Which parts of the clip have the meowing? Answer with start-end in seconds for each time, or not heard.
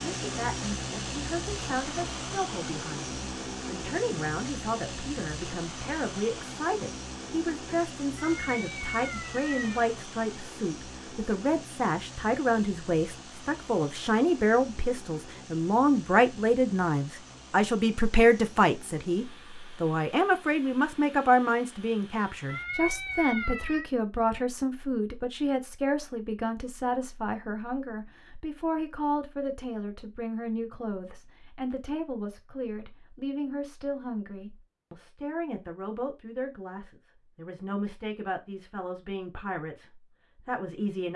8.2-9.9, 22.4-23.9.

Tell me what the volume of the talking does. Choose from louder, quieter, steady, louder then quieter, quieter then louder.
louder then quieter.